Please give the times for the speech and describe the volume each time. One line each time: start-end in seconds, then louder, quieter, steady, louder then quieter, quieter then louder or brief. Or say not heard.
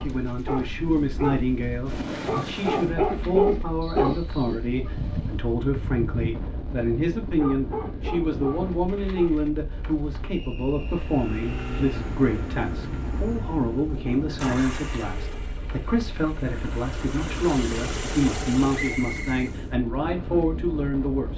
0.0-21.3 steady.